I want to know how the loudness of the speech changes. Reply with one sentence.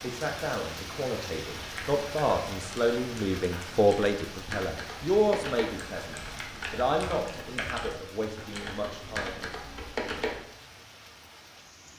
The volume of the speech goes up, then down.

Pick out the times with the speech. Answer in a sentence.
The speech can be heard from 0.0 to 9.5 s.